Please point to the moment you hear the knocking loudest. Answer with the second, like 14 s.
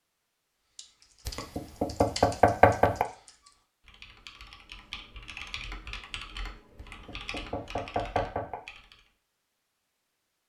3 s.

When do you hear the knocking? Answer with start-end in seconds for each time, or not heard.
1.2-3.0, 6.8-8.6.